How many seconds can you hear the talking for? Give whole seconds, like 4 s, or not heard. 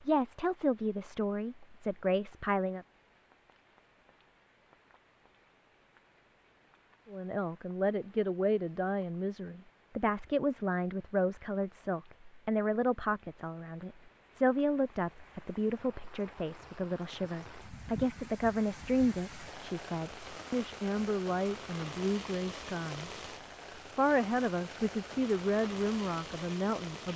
22 s.